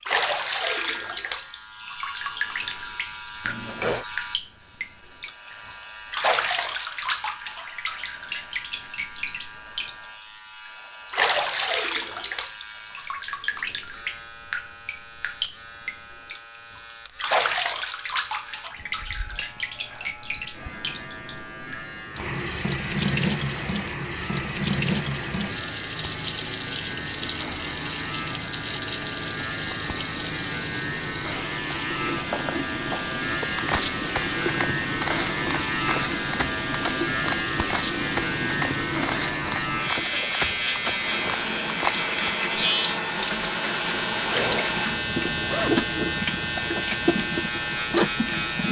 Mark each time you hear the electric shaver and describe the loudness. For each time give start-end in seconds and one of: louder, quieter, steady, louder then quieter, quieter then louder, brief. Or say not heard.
0.0-48.6 louder.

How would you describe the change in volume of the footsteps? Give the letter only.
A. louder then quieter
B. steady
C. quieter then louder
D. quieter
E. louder
B.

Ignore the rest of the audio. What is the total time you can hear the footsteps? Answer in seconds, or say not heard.
10 s.